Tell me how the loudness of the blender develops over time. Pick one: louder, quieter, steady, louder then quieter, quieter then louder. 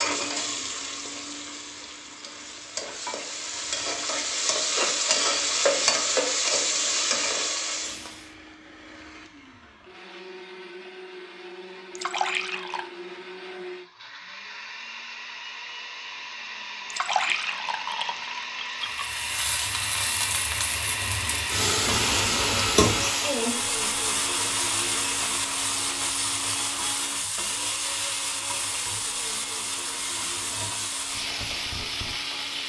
louder then quieter.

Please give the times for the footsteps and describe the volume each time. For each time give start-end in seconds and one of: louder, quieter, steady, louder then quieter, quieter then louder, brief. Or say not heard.
not heard.